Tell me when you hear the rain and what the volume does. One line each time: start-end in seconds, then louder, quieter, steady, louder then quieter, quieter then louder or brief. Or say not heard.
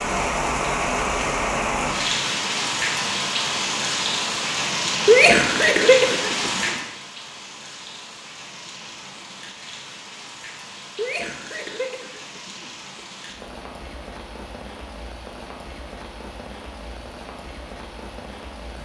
0.0-18.7 quieter.